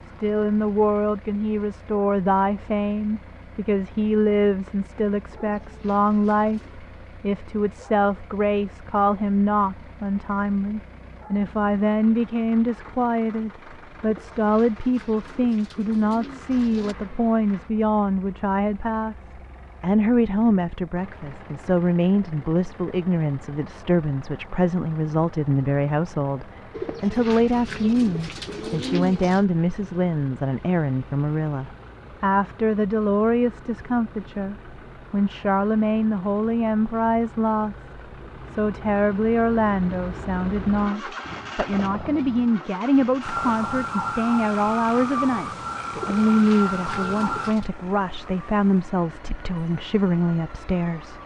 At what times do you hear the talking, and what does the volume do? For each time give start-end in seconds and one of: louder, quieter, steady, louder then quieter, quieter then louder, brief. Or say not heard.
0.1-19.1 steady
19.8-51.2 steady.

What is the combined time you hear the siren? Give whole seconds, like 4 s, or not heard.
8 s.